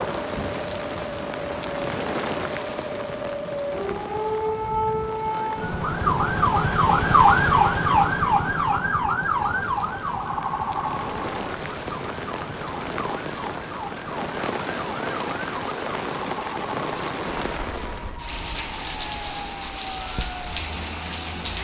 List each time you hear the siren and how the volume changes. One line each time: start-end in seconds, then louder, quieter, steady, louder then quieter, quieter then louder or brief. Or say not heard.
0.1-21.5 louder then quieter.